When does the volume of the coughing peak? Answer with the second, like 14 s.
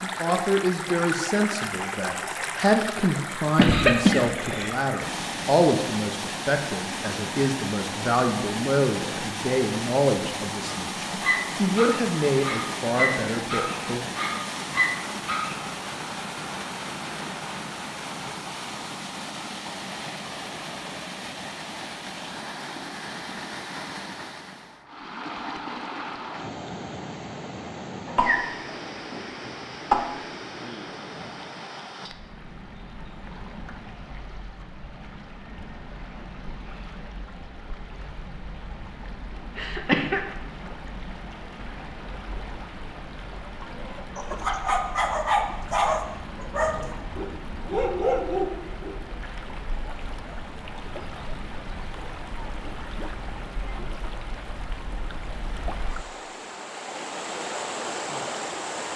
4 s.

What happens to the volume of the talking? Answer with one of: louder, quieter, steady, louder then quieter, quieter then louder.
steady.